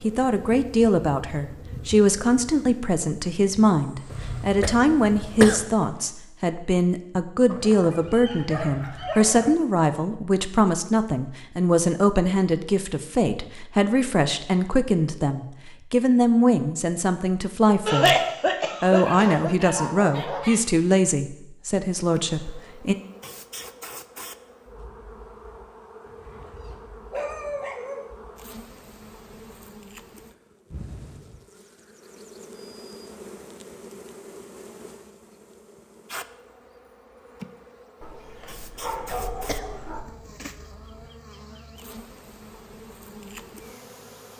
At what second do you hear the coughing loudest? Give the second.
18 s.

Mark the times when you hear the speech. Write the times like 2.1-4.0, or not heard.
0.0-18.1, 18.8-22.9.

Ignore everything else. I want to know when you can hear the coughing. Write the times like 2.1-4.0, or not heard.
4.1-5.7, 17.9-19.6, 39.0-41.0.